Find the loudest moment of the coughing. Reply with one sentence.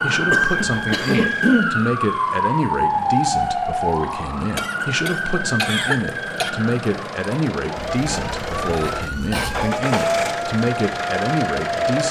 The loudest moment of the coughing is at 6 seconds.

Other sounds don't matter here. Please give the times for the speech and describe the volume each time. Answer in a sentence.
The speech can be heard from 0.0 to 12.0 s, at a steady volume.